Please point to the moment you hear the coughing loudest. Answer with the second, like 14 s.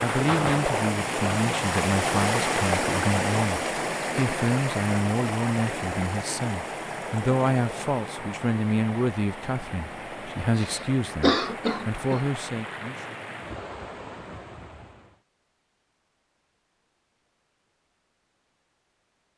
11 s.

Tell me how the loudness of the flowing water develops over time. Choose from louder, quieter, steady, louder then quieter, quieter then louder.
quieter.